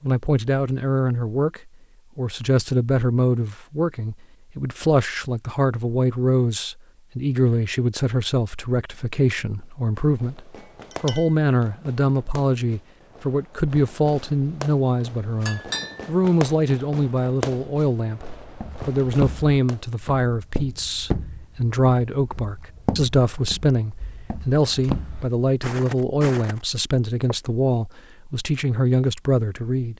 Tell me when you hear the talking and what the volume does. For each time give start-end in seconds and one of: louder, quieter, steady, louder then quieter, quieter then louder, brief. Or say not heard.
0.0-29.9 steady.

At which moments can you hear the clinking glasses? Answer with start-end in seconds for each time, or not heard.
10.6-11.3, 15.4-16.1.